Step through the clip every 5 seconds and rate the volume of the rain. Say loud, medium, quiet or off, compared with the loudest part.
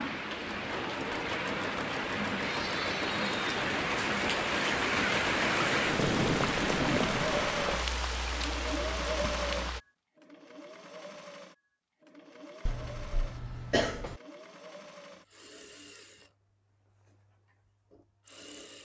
loud, loud, off, off.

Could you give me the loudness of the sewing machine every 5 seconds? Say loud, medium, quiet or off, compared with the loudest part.
loud, loud, quiet, quiet.